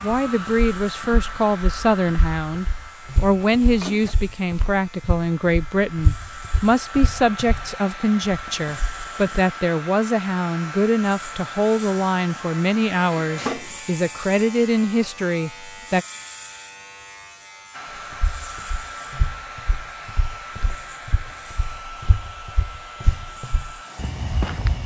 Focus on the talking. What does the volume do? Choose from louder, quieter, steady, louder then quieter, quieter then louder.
steady.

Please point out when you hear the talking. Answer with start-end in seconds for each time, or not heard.
0.0-16.1.